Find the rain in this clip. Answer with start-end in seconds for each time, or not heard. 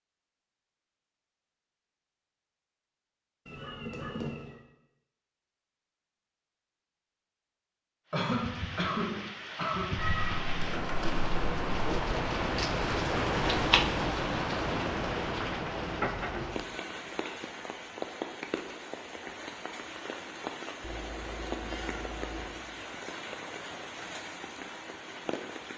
8.2-25.7.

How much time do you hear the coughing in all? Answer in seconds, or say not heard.
2 s.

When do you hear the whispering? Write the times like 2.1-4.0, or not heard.
not heard.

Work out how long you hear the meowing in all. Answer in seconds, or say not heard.
5 s.